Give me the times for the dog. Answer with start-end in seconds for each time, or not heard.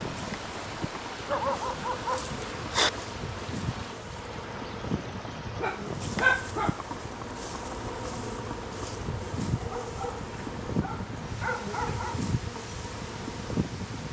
1.2-2.9, 5.6-7.0, 9.6-12.2.